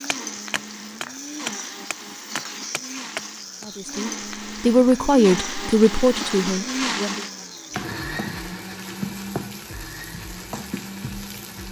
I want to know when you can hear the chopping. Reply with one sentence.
The chopping can be heard from 0.1 to 3.8 s.